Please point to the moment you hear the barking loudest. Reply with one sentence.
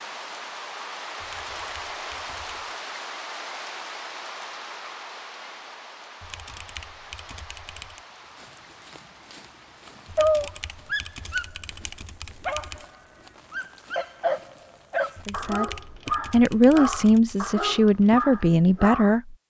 The loudest moment of the barking is at 10 seconds.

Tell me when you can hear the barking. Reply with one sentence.
The barking can be heard from 8.3 to 19.1 s.